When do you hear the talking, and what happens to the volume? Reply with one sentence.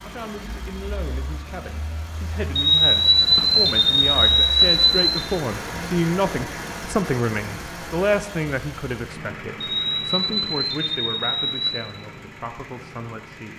You can hear the talking from 0.0 to 13.5 s, getting louder then quieter.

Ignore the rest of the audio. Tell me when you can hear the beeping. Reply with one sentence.
The beeping can be heard from 2.5 to 5.2 s and from 9.8 to 11.8 s.